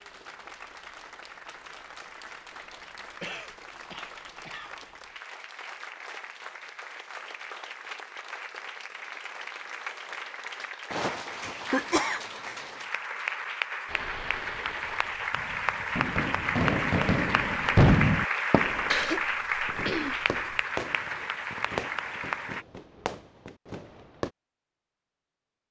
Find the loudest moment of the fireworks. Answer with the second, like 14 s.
18 s.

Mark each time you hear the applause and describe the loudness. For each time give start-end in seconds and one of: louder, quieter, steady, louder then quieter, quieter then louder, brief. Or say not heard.
0.0-22.6 louder.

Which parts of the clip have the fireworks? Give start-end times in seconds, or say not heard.
13.8-24.3.